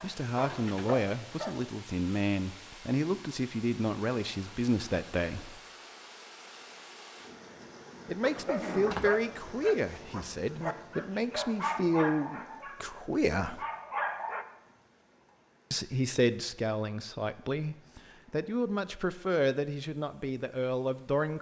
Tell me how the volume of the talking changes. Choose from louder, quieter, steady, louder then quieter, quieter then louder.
steady.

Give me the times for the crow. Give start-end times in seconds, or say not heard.
not heard.